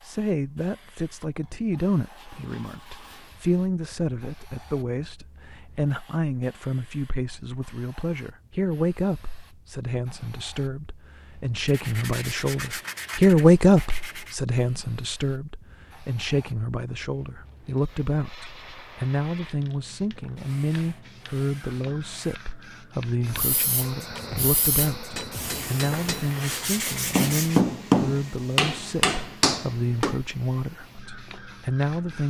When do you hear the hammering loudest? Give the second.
28 s.